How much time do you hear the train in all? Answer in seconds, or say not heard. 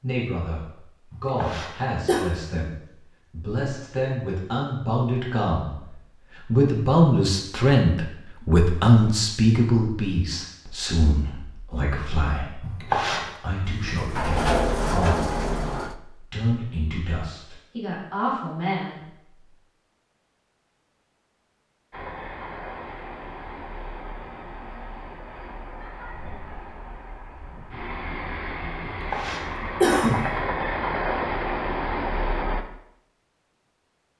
11 s.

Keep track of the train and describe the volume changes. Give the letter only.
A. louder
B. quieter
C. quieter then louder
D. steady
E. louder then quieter
A.